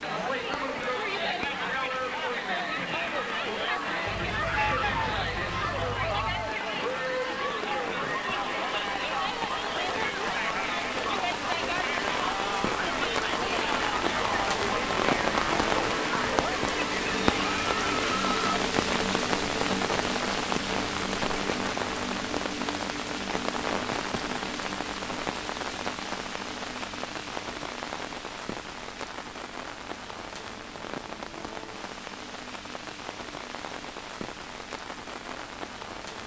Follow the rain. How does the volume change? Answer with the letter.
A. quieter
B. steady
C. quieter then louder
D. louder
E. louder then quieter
E.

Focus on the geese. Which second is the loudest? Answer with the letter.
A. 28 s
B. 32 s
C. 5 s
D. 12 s
C.